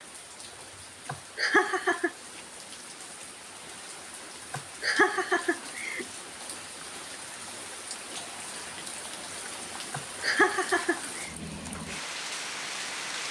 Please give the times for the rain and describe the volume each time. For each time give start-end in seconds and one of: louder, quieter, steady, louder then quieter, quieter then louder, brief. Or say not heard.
0.0-13.2 louder.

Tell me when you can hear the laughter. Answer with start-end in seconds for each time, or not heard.
1.1-2.1, 4.5-6.0, 9.9-11.2.